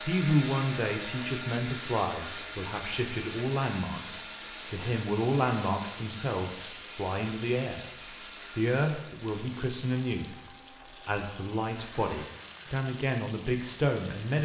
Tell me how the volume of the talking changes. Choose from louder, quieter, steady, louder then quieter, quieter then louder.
steady.